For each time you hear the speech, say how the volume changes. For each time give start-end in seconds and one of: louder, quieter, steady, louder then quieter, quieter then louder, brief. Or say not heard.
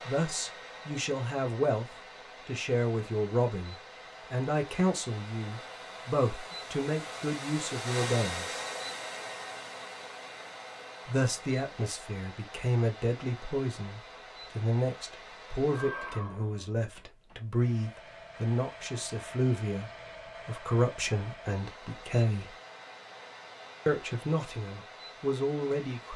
0.1-8.6 steady
11.1-22.6 steady
23.9-26.1 brief.